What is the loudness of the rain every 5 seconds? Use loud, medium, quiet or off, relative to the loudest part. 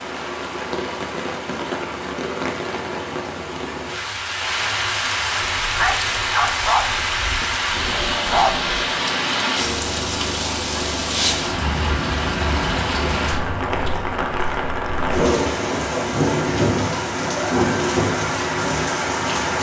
medium, loud, loud, loud.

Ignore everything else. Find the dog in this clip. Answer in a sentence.
The dog can be heard from 5.6 to 8.7 s.